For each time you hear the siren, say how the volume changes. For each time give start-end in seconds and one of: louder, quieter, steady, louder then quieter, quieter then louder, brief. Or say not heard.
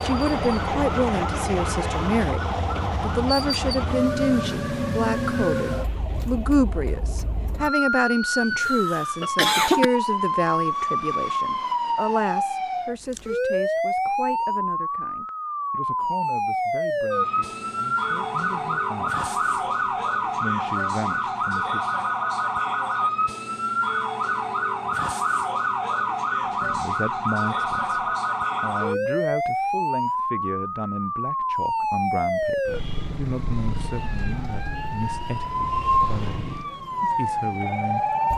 0.0-38.3 steady.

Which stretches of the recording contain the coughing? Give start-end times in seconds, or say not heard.
8.4-9.8.